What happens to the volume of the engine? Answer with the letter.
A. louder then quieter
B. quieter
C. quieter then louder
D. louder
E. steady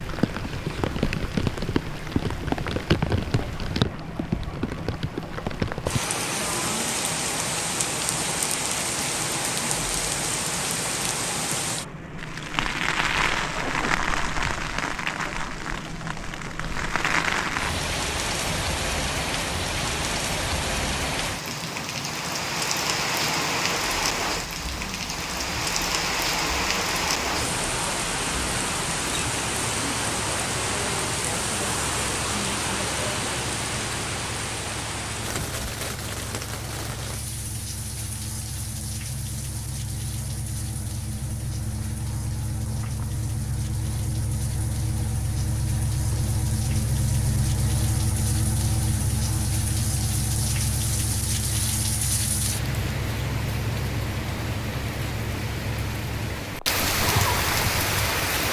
D.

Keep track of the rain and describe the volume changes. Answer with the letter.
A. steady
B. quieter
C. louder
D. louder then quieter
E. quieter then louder
E.